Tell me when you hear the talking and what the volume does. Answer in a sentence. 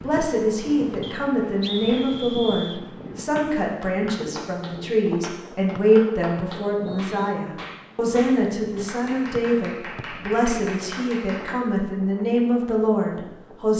The talking can be heard from 0.0 to 13.7 s, at a steady volume.